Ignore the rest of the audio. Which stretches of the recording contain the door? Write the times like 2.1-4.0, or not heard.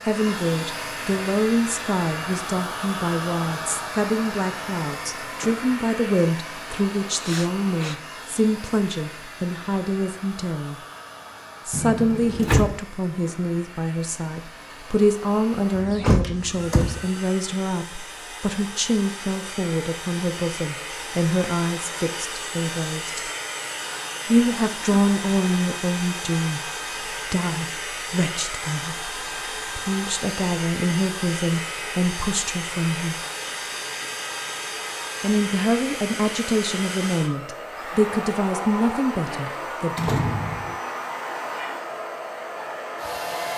11.7-12.8, 15.8-17.1, 40.0-40.8.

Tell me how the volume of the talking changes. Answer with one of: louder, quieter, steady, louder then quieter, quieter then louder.
steady.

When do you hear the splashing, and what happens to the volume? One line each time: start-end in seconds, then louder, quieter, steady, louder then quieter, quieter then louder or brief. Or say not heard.
not heard.